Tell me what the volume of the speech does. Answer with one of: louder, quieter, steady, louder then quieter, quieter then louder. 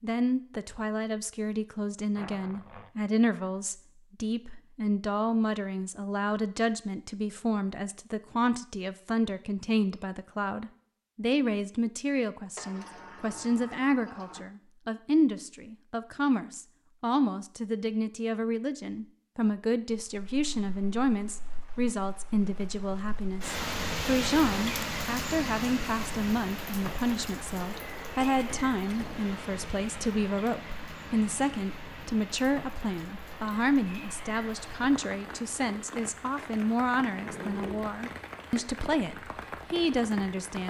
steady.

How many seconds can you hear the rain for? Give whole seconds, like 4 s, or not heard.
21 s.